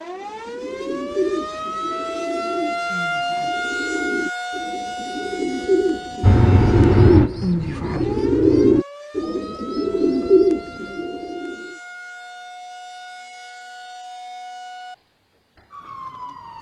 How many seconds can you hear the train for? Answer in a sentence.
You can hear the train for 3 seconds altogether.